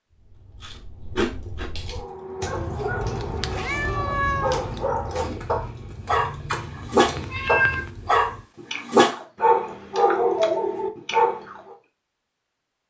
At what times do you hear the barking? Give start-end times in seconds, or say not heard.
1.9-11.8.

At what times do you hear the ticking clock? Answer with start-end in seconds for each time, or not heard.
not heard.